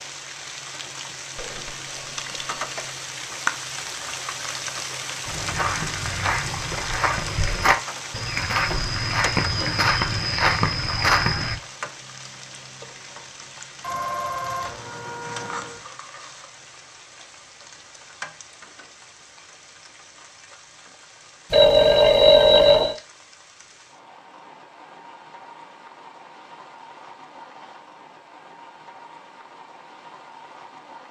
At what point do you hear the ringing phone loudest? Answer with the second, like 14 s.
22 s.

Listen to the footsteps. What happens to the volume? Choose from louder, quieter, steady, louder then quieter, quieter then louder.
louder.